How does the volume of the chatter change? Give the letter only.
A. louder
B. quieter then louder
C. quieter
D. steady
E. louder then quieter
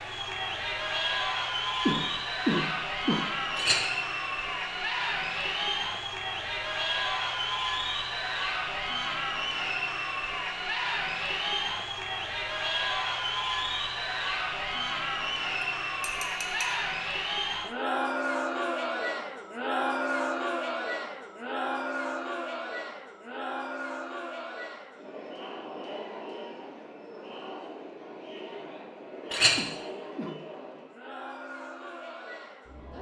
C.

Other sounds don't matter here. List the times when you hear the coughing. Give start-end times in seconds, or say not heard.
1.9-3.2, 29.6-30.4.